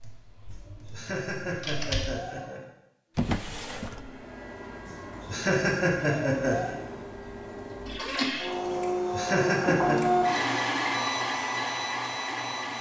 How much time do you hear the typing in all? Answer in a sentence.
The typing can be heard for 2 seconds in total.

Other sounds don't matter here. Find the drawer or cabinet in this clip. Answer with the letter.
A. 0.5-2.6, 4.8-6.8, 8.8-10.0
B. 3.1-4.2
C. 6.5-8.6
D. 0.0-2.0
B.